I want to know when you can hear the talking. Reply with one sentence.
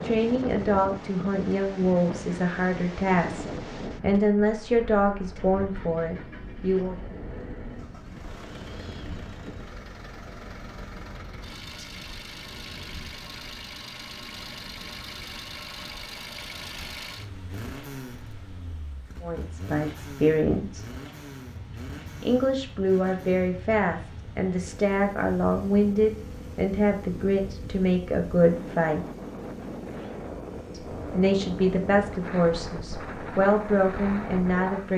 The talking can be heard from 0.0 to 7.0 s, from 19.2 to 20.9 s, from 22.2 to 29.1 s and from 30.7 to 34.9 s.